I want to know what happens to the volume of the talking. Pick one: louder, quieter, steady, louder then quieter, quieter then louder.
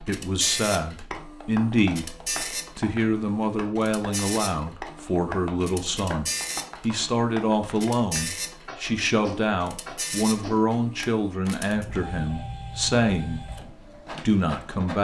steady.